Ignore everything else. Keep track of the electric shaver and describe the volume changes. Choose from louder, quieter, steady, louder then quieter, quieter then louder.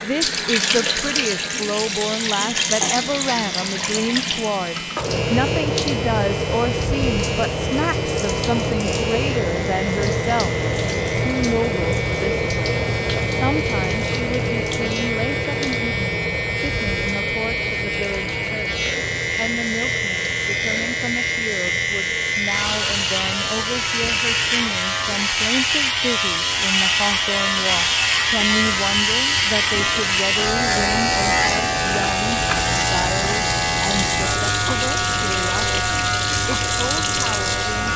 louder.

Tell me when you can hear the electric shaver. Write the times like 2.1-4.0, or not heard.
0.0-37.9.